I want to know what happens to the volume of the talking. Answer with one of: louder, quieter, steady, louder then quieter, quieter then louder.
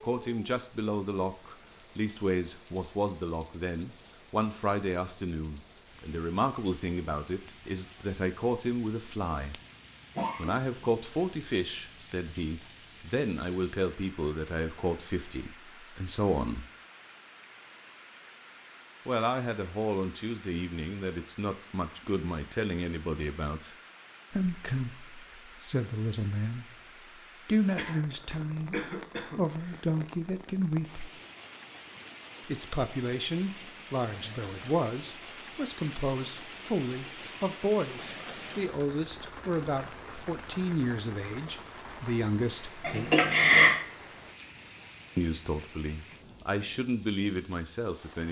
steady.